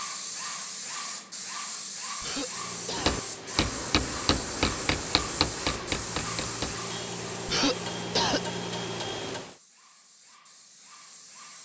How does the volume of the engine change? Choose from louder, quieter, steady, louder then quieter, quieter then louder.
louder.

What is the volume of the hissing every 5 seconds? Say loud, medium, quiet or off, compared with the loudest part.
loud, loud, quiet.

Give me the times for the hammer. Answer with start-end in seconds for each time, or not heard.
3.0-9.4.